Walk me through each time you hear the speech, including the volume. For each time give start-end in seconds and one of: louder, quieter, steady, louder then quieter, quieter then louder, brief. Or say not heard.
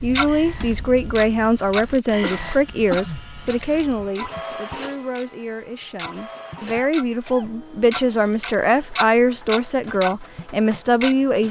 0.0-11.4 quieter then louder.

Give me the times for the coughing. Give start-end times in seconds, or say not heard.
2.2-3.2, 6.7-7.5.